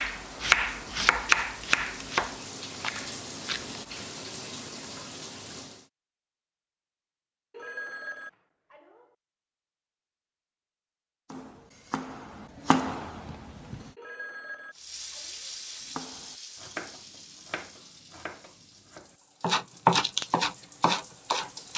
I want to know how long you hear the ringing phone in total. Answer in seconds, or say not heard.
3 s.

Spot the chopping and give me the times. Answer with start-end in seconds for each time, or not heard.
0.0-4.0, 11.3-13.9, 15.8-21.7.